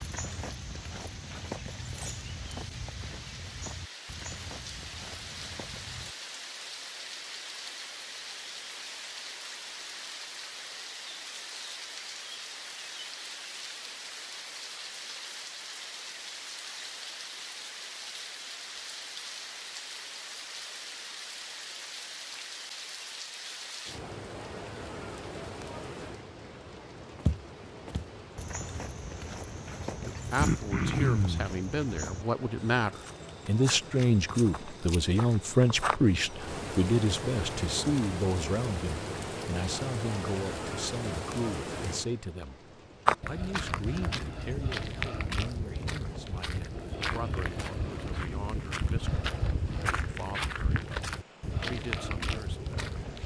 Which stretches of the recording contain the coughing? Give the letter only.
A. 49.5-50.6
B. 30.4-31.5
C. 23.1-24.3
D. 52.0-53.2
B.